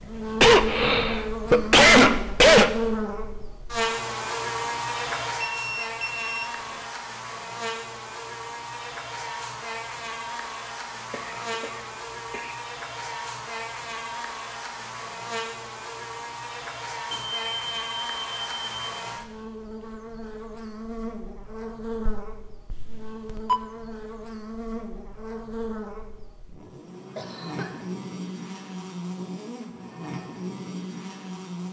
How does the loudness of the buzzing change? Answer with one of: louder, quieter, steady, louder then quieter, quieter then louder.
quieter.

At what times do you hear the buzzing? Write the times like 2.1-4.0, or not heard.
0.0-31.6.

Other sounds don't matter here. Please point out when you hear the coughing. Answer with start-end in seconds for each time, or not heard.
0.4-2.8, 11.1-12.6, 27.1-27.9.